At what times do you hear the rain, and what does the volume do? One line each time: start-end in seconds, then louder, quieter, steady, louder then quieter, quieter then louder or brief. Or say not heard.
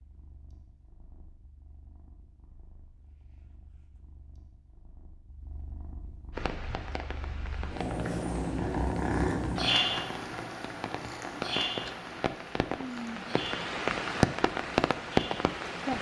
6.3-15.9 louder.